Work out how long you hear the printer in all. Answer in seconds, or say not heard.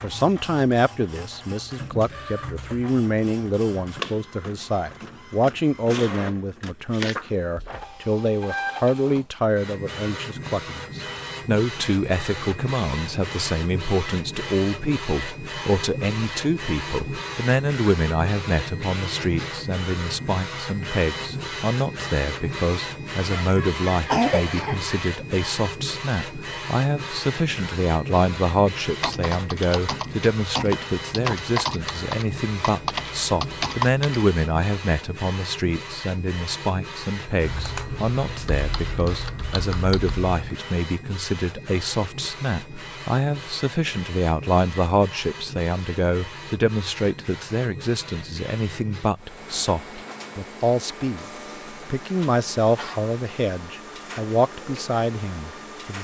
56 s.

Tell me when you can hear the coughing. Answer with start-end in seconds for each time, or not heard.
23.3-25.1.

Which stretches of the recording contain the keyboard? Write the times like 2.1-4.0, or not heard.
29.0-34.2, 37.4-40.5.